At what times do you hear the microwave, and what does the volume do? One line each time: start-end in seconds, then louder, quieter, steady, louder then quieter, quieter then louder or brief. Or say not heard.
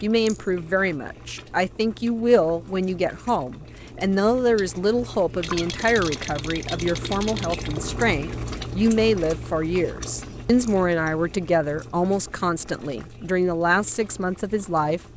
not heard.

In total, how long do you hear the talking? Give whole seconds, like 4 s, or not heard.
15 s.